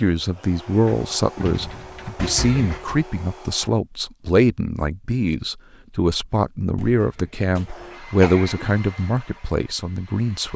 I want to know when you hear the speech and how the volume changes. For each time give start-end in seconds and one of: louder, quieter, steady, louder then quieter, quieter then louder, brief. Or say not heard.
0.0-10.5 steady.